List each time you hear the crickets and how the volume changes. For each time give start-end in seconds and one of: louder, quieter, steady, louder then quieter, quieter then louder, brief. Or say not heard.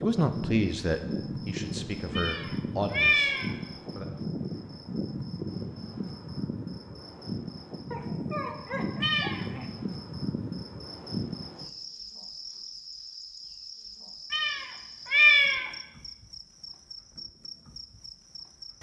0.0-18.7 quieter.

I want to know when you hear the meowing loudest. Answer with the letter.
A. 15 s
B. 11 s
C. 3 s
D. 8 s
A.